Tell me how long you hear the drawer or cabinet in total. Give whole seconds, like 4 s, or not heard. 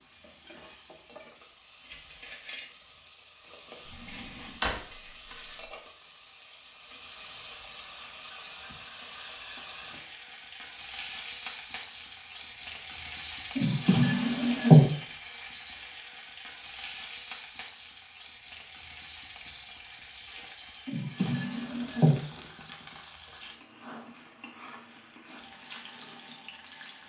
4 s.